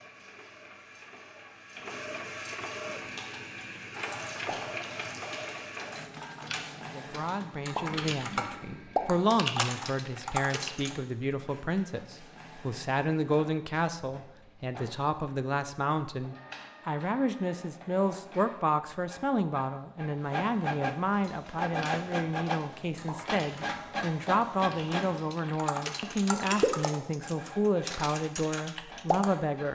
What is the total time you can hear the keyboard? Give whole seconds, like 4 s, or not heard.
16 s.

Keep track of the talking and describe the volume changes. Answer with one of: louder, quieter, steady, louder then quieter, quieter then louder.
steady.